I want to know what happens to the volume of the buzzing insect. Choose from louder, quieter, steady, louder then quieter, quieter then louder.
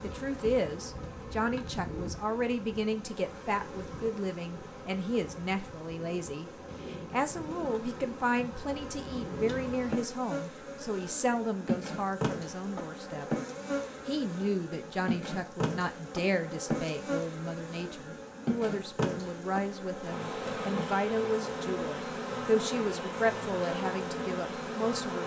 louder.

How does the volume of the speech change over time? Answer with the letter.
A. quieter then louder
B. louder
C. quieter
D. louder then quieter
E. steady
E.